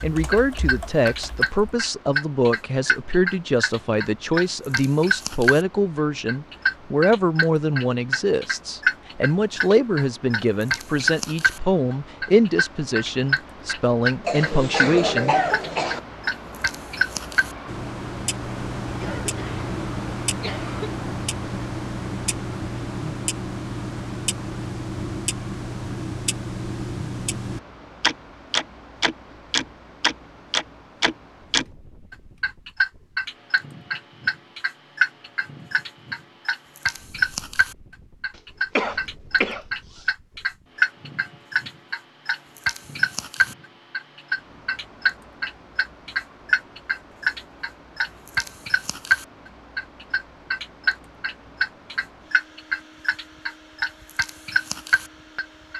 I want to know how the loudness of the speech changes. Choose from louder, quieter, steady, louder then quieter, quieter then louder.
steady.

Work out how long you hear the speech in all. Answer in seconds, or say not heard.
15 s.